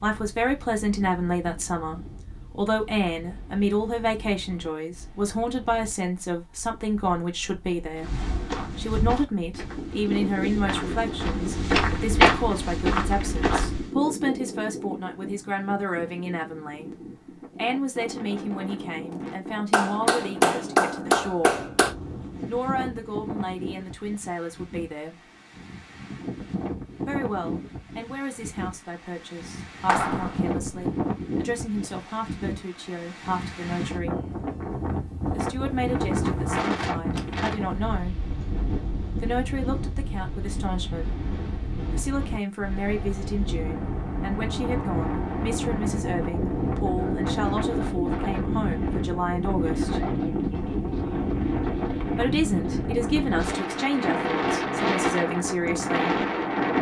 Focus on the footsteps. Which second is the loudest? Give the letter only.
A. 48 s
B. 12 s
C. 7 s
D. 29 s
B.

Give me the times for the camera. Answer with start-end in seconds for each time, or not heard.
not heard.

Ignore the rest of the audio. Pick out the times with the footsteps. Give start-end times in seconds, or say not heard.
8.0-13.9.